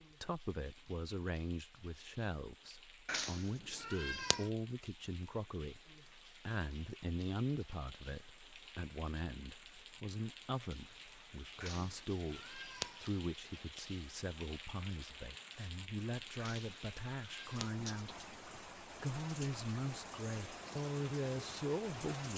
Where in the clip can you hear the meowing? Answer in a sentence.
You can hear the meowing from 3.0 to 4.5 s, from 11.6 to 13.1 s and from 16.4 to 17.9 s.